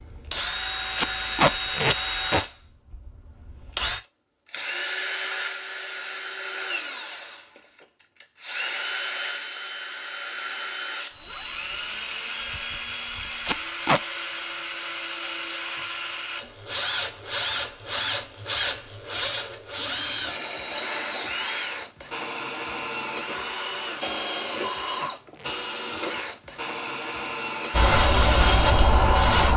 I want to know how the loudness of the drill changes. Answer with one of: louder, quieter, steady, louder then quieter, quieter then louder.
steady.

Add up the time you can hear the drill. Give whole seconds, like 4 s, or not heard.
29 s.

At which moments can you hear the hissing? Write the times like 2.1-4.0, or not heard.
27.7-29.5.